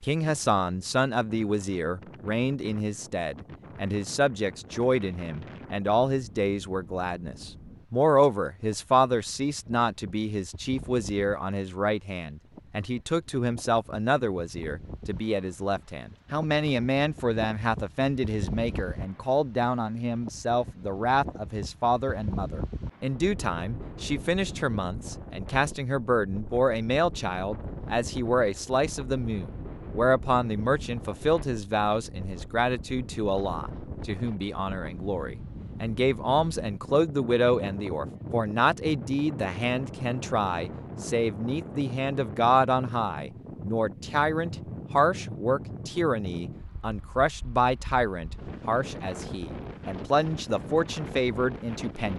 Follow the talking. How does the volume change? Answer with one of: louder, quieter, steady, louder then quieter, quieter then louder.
steady.